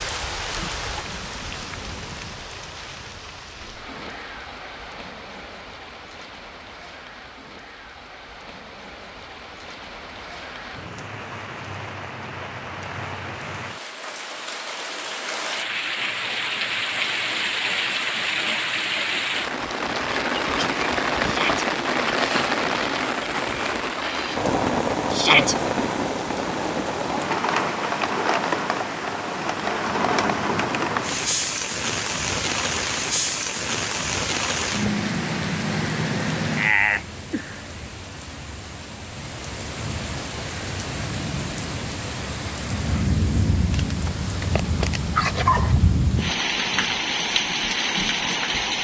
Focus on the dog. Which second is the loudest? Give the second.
45 s.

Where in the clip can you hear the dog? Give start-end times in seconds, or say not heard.
43.7-45.8.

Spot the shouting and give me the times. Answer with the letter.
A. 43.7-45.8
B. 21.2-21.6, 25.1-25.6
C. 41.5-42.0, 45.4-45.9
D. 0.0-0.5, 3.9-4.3
B.